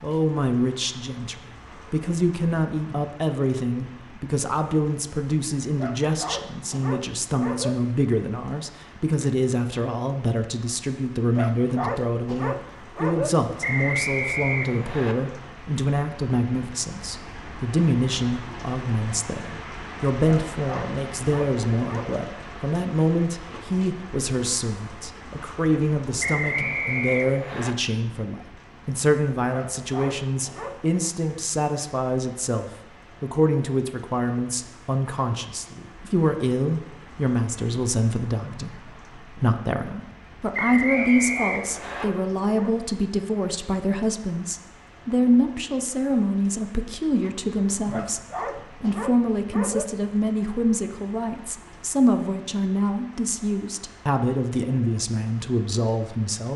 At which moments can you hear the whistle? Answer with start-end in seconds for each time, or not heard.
13.6-15.2, 26.2-27.8, 40.5-42.0.